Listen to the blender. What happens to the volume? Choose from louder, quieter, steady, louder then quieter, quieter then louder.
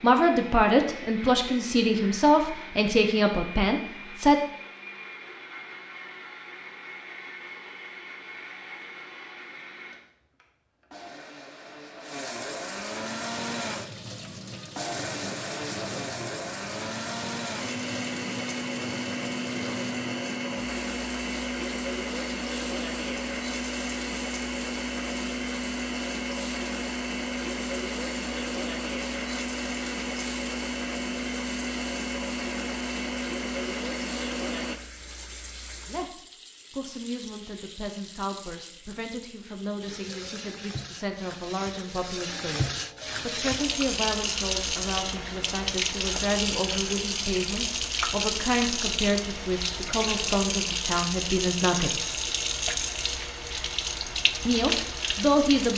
louder.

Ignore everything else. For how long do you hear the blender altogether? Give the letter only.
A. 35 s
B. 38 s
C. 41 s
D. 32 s
A.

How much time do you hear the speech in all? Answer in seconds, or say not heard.
22 s.